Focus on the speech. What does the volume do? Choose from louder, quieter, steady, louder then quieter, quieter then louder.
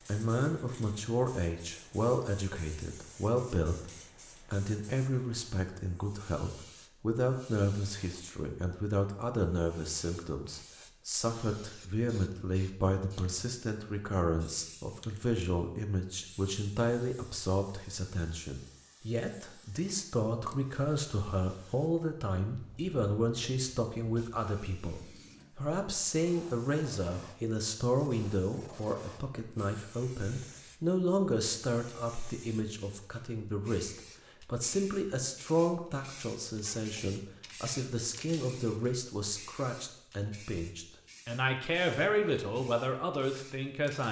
steady.